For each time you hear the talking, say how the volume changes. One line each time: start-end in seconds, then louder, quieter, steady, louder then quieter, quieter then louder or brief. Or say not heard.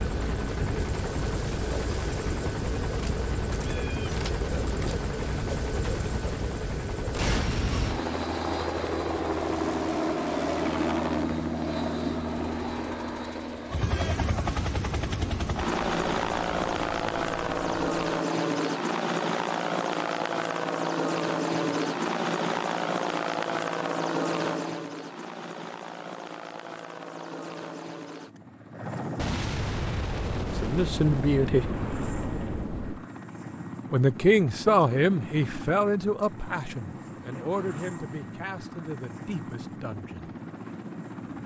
30.6-31.6 brief
33.9-40.3 quieter.